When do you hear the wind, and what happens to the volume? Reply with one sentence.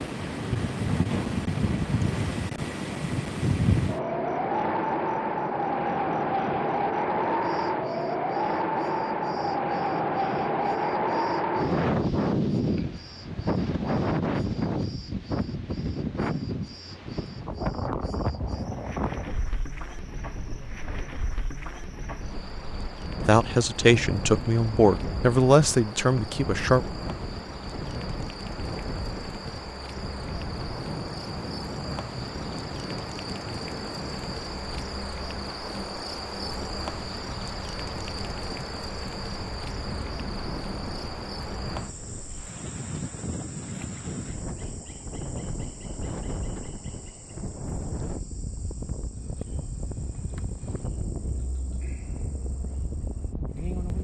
The wind can be heard from 0.0 to 53.9 s, getting quieter.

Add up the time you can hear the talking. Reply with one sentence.
The talking can be heard for 4 seconds in total.